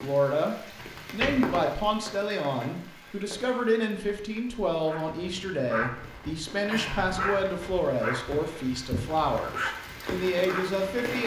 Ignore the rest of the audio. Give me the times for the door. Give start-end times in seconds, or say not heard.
0.8-1.6.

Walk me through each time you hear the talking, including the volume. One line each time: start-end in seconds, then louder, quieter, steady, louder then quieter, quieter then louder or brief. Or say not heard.
0.0-11.2 steady.